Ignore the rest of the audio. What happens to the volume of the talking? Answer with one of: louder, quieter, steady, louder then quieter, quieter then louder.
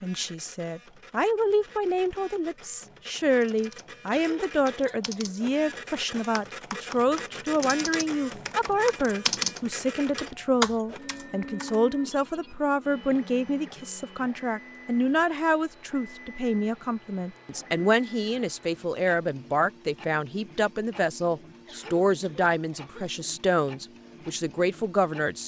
steady.